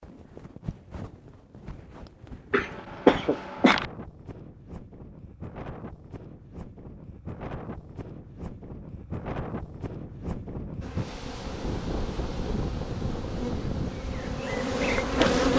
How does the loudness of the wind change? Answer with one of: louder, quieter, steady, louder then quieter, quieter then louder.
louder.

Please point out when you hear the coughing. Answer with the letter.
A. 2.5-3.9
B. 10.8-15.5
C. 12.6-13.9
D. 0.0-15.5
A.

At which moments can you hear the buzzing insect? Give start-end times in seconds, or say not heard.
10.8-15.5.